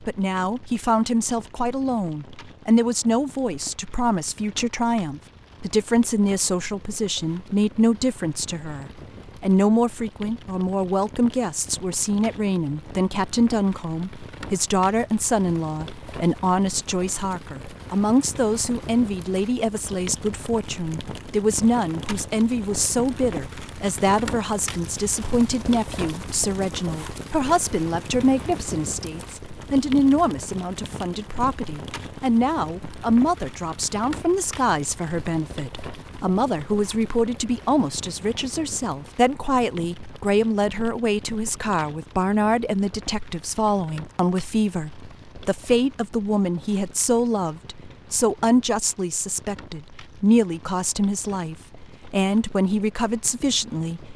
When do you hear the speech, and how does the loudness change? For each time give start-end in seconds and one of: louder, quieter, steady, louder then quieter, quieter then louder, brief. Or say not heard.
0.1-54.1 steady.